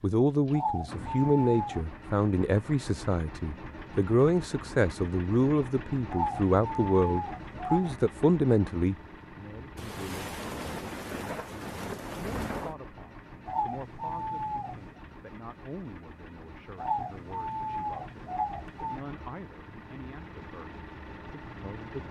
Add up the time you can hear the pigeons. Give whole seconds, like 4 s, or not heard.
7 s.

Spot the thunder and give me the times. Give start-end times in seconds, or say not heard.
9.8-12.8.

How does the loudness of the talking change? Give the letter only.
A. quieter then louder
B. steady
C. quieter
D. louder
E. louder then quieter
C.